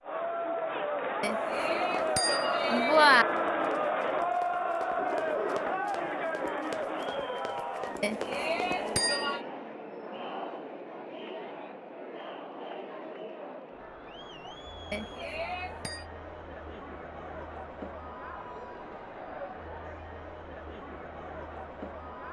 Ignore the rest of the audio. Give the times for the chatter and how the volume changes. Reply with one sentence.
The chatter can be heard from 0.0 to 22.2 s, getting quieter.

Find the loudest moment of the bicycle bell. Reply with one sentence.
The loudest moment of the bicycle bell is at 3 seconds.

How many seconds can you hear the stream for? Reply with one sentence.
You can't hear the stream here.